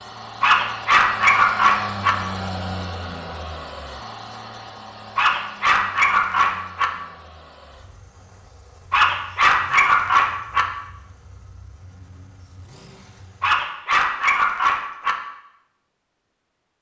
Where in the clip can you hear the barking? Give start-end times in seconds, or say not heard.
0.4-2.1, 5.2-6.9, 8.9-10.7, 13.4-15.2.